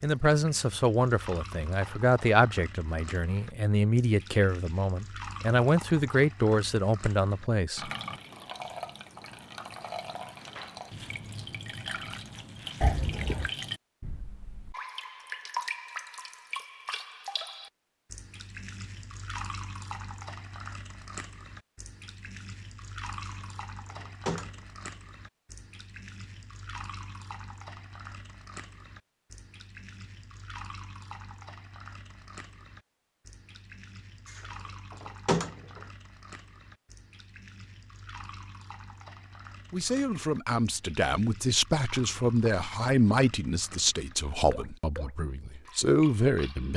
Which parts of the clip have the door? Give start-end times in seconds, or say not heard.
12.8-13.5, 23.2-24.6, 34.2-35.8.